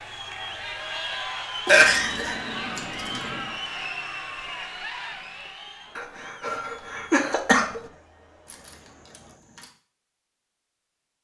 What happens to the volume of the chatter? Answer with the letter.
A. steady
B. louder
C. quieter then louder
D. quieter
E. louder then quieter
D.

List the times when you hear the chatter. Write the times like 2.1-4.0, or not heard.
0.0-9.4.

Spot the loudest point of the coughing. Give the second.
2 s.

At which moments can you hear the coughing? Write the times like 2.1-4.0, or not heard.
1.6-2.4, 6.0-7.8.